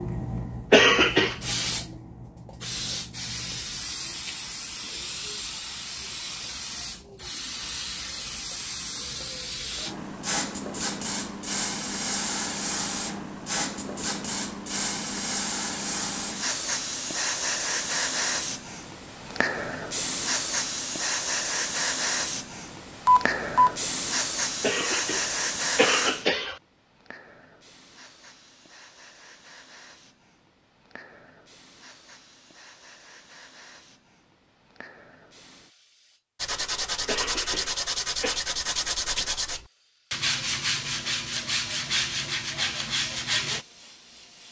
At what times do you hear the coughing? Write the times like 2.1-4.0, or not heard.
0.7-1.4, 24.6-26.6, 37.0-38.4.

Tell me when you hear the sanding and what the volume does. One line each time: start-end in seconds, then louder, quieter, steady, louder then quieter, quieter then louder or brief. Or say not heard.
36.4-43.6 steady.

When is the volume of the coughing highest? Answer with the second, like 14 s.
1 s.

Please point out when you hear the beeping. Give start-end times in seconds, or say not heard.
23.1-23.7.